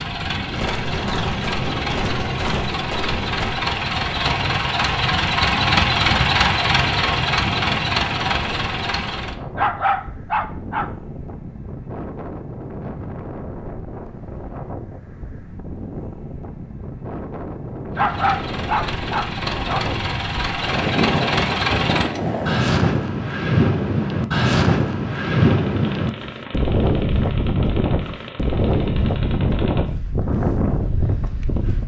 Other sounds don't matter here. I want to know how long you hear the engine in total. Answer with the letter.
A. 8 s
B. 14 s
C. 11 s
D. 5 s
B.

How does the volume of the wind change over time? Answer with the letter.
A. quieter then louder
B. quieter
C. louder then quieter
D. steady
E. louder
E.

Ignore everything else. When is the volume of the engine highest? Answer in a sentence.
The loudest moment of the engine is at 6 seconds.